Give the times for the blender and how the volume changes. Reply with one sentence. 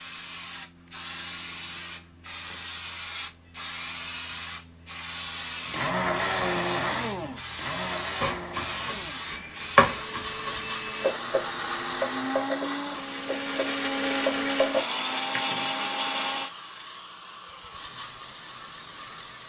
You can hear the blender from 5.7 to 16.5 s, getting quieter then louder.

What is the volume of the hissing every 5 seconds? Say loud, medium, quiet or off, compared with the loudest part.
loud, loud, loud, medium.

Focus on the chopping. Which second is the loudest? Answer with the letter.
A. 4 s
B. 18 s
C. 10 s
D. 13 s
C.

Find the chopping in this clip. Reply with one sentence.
You can hear the chopping from 8.2 to 14.8 s.